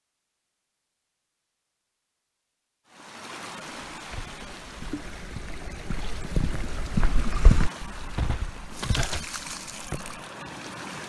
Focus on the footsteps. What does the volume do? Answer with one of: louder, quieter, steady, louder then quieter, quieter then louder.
louder then quieter.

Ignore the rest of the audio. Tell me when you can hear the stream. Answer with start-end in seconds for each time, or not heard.
2.9-11.0.